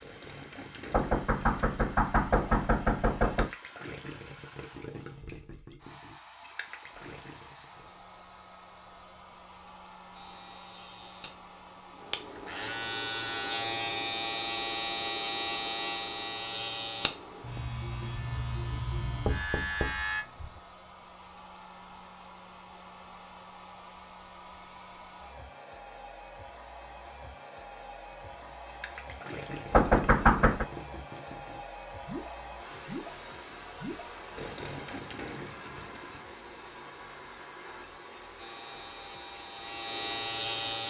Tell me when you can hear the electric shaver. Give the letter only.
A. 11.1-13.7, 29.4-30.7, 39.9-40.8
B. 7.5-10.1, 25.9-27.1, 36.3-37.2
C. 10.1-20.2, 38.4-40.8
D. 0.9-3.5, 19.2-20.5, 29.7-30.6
C.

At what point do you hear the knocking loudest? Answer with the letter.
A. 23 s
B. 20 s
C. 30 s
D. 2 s
C.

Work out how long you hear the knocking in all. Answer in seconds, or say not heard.
5 s.